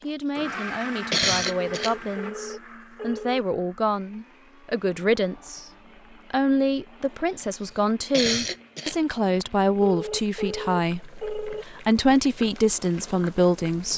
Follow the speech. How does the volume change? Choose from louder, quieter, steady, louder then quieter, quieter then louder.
louder.